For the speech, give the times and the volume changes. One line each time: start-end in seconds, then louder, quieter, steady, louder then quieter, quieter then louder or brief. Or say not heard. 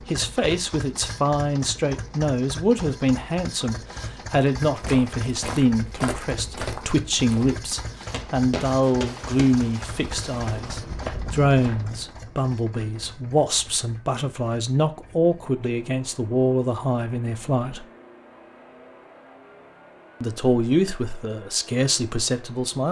0.0-17.9 steady
20.2-22.8 brief.